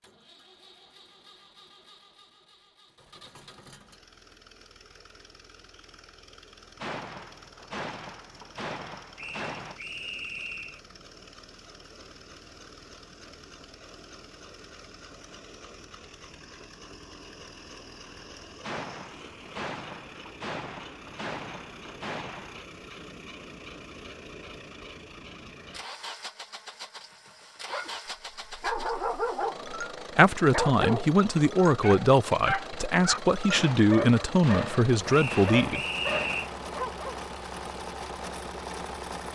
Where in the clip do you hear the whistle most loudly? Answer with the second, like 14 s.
36 s.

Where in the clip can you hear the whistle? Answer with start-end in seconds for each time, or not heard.
9.2-10.8, 35.1-36.5.